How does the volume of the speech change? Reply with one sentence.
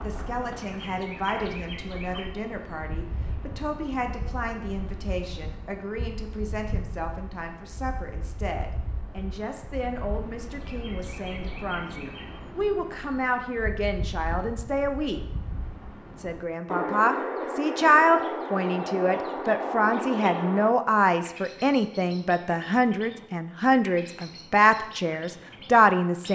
The loudness of the speech goes up.